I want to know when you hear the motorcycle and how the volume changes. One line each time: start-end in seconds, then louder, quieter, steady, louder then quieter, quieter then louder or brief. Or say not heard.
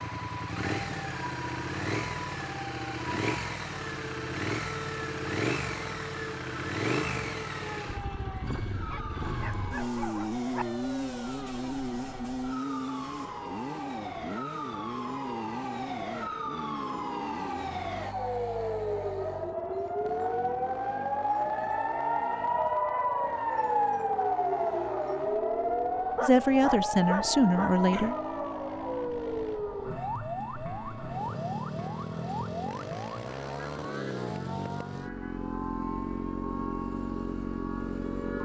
0.0-38.4 quieter then louder.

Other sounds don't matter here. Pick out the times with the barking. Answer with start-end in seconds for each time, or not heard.
8.9-10.7, 26.1-27.8.